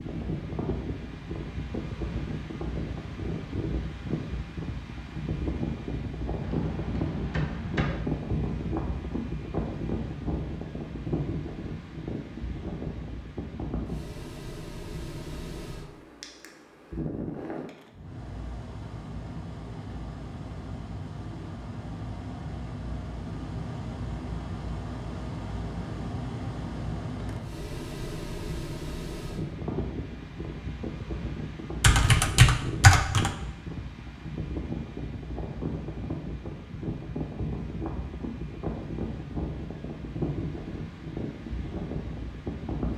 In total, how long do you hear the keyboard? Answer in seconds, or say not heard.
3 s.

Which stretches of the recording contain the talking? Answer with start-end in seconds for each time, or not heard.
not heard.